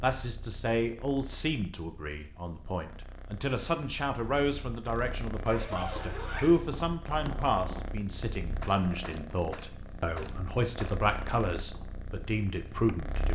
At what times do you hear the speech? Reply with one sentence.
The speech can be heard from 0.0 to 13.3 s.